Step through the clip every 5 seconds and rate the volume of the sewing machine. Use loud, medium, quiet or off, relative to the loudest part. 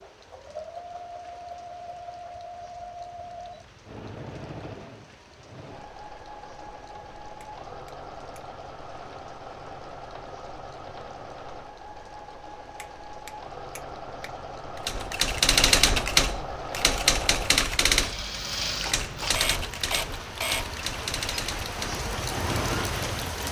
medium, medium, medium, loud, loud.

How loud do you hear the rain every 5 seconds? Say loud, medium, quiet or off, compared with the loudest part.
quiet, quiet, quiet, medium, loud.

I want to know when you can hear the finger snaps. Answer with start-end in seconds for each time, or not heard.
7.4-8.4, 12.8-14.3.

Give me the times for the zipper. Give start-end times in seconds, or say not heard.
not heard.